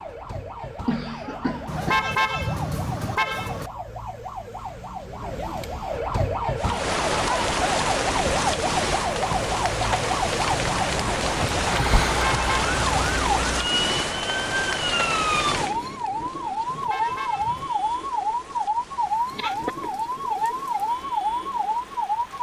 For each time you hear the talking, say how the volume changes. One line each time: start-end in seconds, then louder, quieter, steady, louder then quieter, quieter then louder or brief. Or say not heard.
not heard.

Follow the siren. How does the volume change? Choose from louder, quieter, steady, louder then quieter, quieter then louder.
louder.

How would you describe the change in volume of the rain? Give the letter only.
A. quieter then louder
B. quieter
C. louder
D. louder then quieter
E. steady
B.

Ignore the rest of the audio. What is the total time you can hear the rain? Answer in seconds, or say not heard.
16 s.